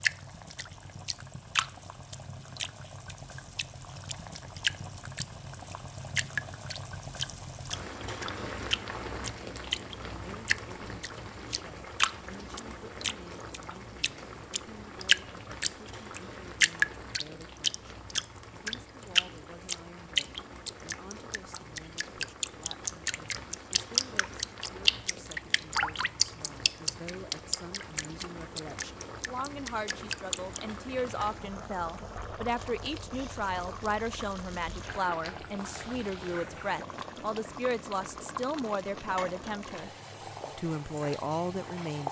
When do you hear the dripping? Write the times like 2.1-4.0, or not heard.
0.0-30.6.